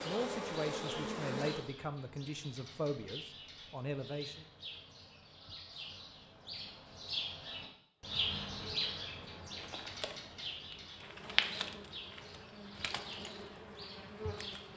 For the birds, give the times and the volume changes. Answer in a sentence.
The birds can be heard from 0.0 to 14.7 s, getting louder then quieter.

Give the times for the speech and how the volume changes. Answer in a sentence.
You can hear the speech from 0.0 to 4.5 s, at a steady volume.